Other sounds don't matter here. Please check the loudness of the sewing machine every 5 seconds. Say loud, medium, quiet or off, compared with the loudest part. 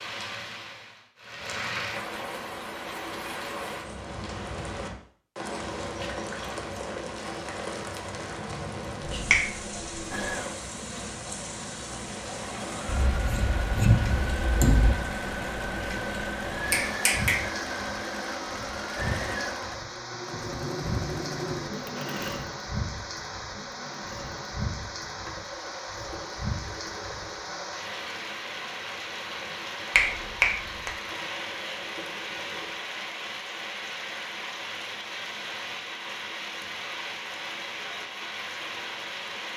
off, off, loud, loud, loud, medium, medium, off.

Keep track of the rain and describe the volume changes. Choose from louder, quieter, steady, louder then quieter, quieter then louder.
steady.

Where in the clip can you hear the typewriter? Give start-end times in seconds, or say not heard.
not heard.